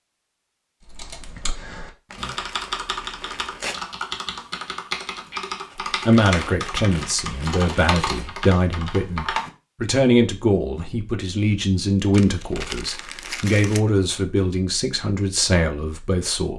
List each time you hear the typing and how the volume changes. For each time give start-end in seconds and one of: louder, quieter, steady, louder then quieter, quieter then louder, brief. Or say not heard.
0.8-9.5 steady.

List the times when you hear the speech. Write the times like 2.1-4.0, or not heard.
6.0-16.5.